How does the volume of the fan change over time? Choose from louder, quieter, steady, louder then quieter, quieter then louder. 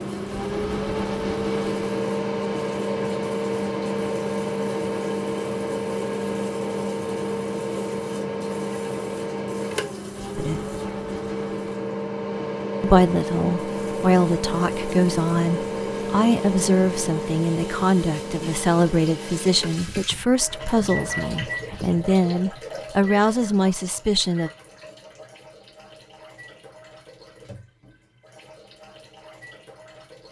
quieter.